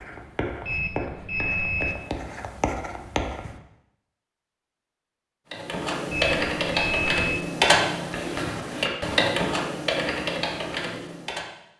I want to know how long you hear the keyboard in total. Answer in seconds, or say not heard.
6 s.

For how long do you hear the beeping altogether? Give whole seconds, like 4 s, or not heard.
3 s.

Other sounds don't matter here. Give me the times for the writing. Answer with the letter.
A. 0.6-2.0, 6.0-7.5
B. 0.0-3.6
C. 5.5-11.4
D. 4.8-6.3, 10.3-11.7
B.